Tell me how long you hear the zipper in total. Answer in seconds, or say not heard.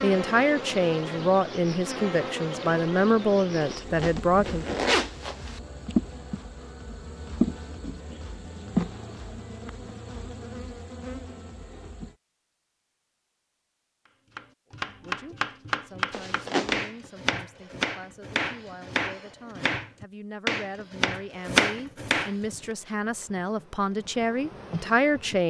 3 s.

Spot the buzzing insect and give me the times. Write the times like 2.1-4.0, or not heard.
0.0-12.2, 22.4-25.4.